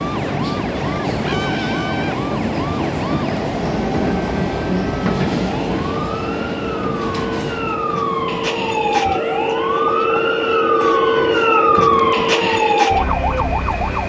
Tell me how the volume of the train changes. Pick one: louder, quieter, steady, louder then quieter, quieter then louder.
quieter.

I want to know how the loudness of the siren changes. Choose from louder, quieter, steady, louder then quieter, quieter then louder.
louder.